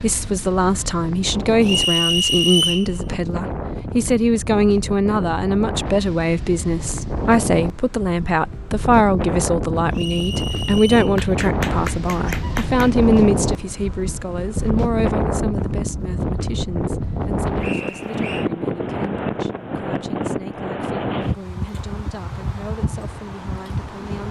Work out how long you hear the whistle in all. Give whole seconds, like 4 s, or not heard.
3 s.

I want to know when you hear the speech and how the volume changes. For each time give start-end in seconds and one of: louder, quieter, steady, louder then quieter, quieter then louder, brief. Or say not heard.
0.0-24.2 quieter.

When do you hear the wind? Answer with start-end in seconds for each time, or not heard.
0.0-24.2.